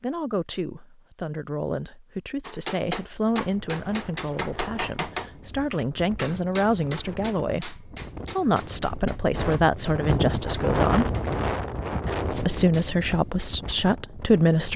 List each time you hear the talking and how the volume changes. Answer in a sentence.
You can hear the talking from 0.0 to 11.1 s, getting louder; and briefly from 12.3 to 14.7 s.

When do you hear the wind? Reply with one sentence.
You can hear the wind from 3.1 to 14.7 s.